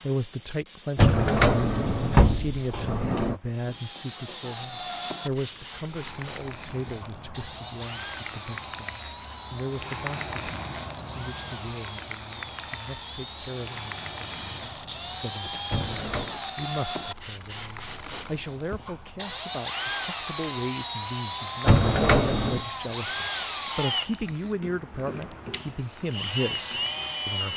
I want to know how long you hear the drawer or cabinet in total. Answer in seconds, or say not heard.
4 s.